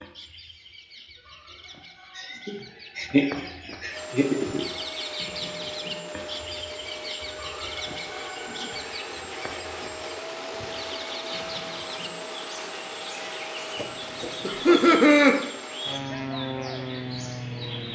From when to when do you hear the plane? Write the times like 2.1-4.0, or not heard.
3.9-17.8.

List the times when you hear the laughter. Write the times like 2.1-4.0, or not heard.
2.1-4.7, 14.4-15.3.